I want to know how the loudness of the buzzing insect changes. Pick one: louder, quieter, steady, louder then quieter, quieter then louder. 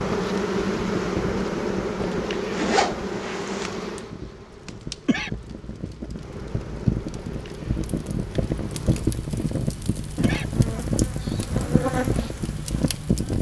quieter then louder.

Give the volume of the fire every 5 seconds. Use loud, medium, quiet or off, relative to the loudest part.
medium, loud, loud.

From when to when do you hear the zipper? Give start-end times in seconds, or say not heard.
2.5-3.7.